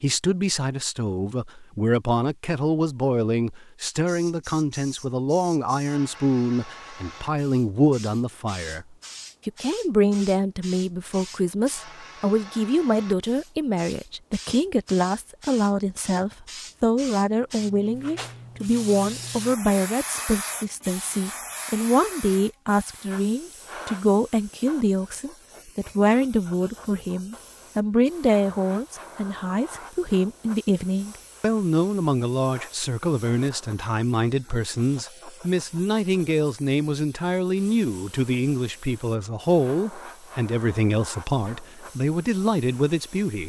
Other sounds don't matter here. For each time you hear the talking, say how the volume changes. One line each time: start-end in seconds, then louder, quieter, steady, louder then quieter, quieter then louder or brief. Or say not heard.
0.0-43.4 steady.